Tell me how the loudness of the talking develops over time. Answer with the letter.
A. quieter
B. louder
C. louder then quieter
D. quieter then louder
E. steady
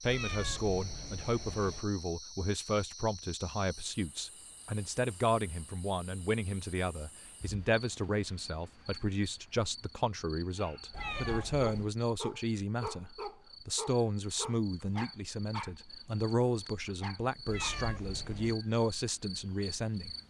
E.